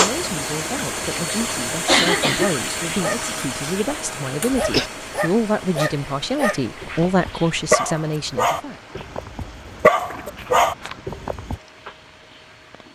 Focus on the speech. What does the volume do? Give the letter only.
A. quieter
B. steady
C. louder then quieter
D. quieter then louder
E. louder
E.